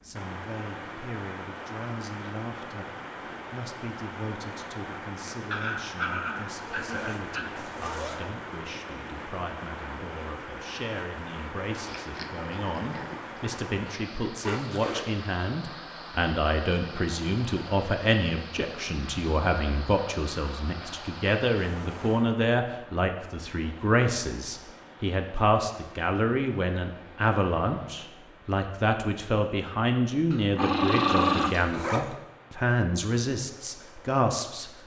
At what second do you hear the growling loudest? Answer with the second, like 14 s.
31 s.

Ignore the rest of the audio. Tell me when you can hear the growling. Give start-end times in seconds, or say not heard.
5.5-7.5, 11.8-13.4, 30.3-31.7.